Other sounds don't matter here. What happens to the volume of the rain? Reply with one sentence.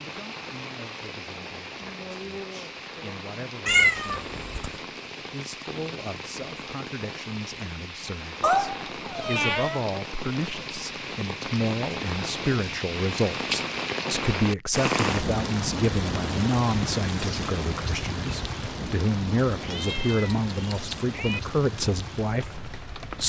The volume of the rain goes up, then down.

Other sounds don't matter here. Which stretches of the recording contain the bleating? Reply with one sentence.
The bleating can't be heard in this clip.